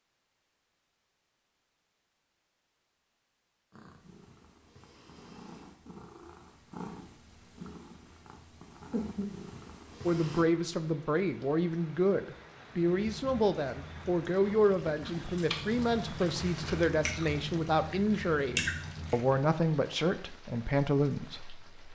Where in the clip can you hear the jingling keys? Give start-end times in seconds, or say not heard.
not heard.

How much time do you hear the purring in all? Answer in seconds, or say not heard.
7 s.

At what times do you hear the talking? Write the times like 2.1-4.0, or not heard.
10.1-21.6.